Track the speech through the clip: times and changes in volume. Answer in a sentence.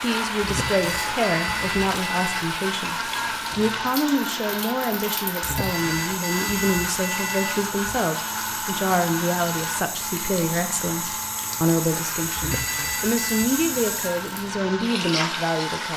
You can hear the speech briefly from 0.0 to 3.0 s; and from 3.5 to 15.9 s, at a steady volume.